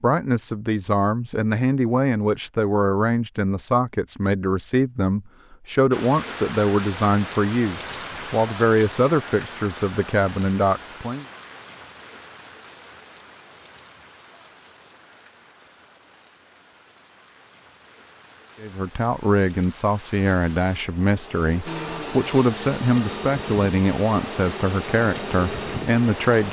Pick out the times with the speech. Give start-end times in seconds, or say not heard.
0.0-11.2, 18.6-26.4.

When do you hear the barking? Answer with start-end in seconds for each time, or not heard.
not heard.